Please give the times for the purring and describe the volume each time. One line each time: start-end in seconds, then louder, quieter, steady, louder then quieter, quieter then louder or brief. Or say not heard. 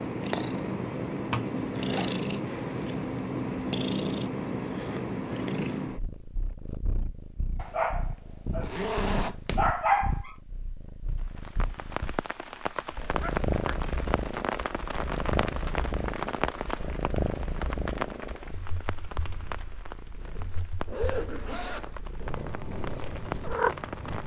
0.0-24.2 quieter.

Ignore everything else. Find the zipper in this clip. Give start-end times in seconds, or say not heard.
1.7-2.9, 8.7-9.6, 20.2-21.9.